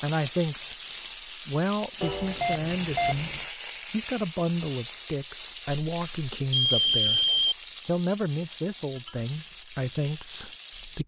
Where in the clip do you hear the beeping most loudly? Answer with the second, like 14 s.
7 s.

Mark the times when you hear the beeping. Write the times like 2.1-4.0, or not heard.
2.0-3.5, 5.9-7.5.